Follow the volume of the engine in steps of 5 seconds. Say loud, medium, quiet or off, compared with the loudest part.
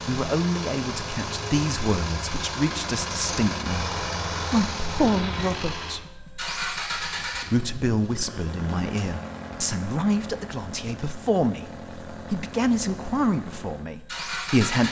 loud, loud, medium.